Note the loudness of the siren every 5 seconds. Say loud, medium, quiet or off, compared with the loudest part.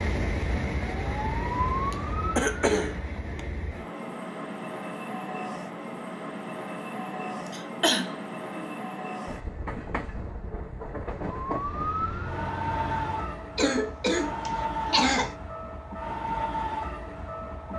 loud, off, loud, off.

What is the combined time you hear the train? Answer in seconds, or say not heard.
18 s.